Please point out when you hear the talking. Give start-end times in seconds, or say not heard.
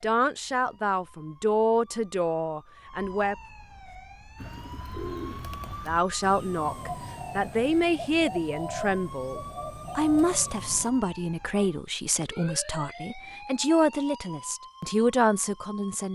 0.0-3.4, 5.8-16.0.